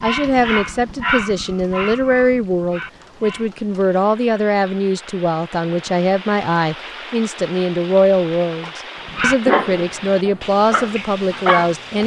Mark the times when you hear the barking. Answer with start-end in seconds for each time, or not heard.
0.0-3.5, 9.1-11.8.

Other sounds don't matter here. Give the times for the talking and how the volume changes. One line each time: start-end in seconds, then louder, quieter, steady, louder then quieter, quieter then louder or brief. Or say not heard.
0.0-12.0 steady.